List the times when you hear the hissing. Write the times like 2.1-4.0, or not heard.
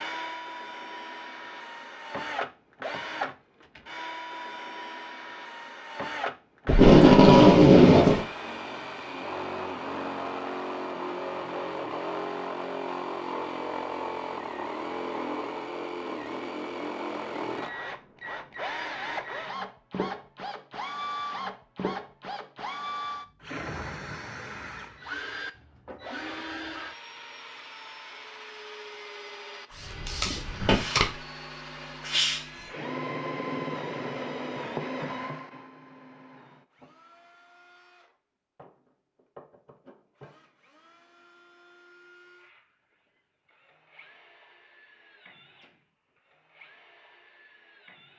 29.7-32.7.